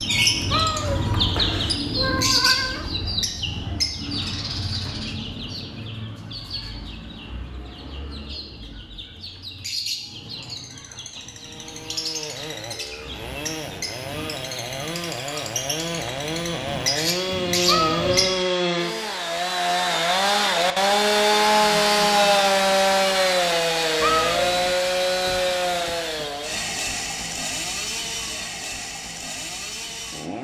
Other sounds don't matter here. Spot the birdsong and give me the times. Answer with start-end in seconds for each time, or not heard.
0.0-18.3.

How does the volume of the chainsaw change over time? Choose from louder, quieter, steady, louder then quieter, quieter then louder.
louder then quieter.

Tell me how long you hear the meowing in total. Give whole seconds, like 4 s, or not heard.
4 s.